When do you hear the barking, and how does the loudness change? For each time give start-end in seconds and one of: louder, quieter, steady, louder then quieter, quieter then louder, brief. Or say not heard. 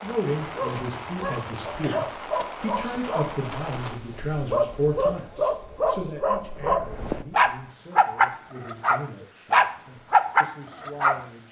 0.3-11.2 louder.